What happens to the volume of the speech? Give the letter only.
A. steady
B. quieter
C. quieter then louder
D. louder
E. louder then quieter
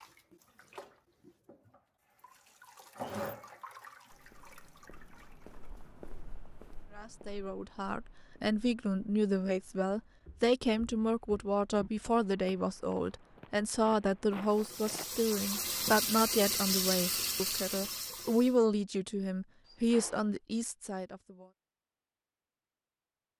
A.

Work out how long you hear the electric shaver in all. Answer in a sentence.
The electric shaver can't be heard in this clip.